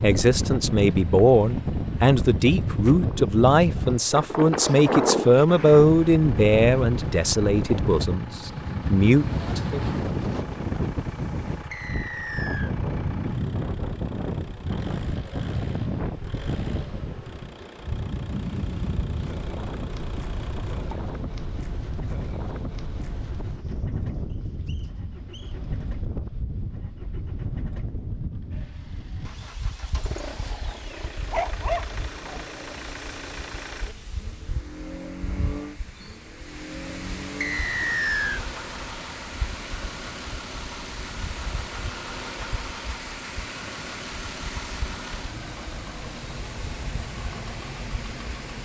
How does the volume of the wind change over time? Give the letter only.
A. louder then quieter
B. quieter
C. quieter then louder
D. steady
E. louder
B.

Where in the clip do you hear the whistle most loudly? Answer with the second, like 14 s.
38 s.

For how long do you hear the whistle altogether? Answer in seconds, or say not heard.
3 s.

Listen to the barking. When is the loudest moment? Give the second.
32 s.